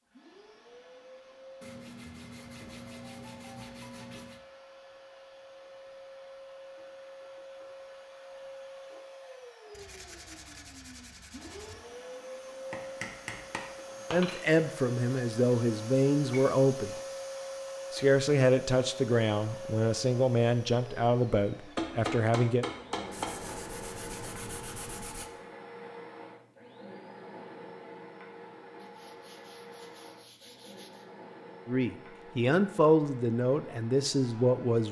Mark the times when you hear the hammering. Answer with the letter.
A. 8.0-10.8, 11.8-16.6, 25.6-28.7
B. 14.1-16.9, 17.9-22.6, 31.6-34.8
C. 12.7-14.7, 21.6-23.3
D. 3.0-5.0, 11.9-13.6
C.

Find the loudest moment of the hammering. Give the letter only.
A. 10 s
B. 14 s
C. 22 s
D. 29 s
C.